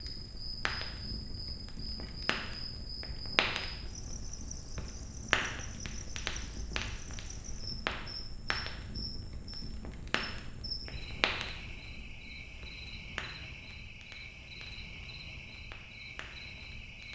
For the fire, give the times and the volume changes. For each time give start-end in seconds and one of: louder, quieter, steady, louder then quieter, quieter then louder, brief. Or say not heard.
0.0-17.0 quieter.